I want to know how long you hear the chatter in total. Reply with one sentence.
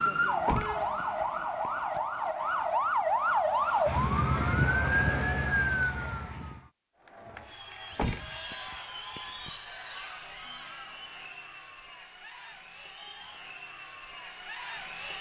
You can hear the chatter for 8 seconds altogether.